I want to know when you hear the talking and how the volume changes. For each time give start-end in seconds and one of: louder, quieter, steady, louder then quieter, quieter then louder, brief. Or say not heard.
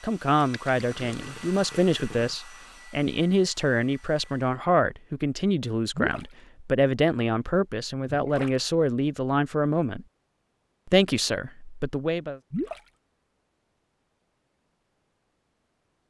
0.0-10.1 steady
10.8-12.4 brief.